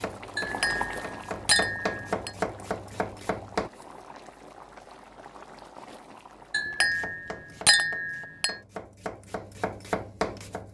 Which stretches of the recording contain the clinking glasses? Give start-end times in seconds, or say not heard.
0.3-2.3, 6.5-8.6.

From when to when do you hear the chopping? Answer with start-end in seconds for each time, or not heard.
0.0-3.7, 6.8-10.7.